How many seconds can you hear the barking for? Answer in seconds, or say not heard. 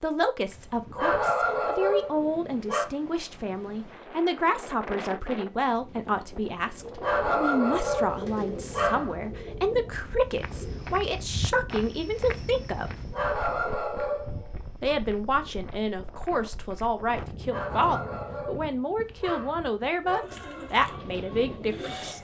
9 s.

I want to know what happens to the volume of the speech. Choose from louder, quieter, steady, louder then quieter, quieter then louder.
steady.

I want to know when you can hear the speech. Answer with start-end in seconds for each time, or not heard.
0.0-13.1, 14.8-22.1.